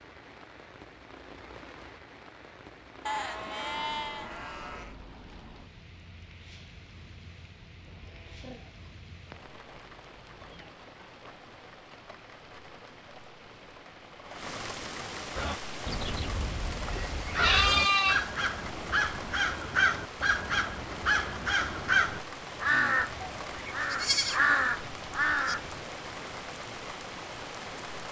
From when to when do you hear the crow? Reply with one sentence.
You can hear the crow from 15.3 to 25.7 s.